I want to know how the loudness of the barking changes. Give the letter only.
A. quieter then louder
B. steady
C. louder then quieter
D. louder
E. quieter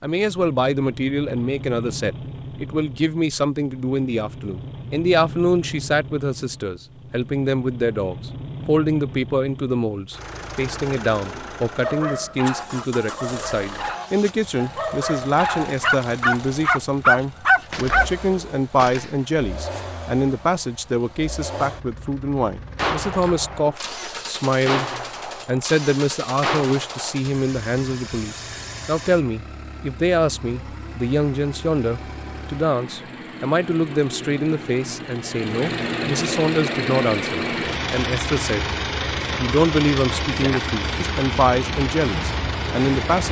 D.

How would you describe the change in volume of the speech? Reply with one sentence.
The loudness of the speech stays about the same.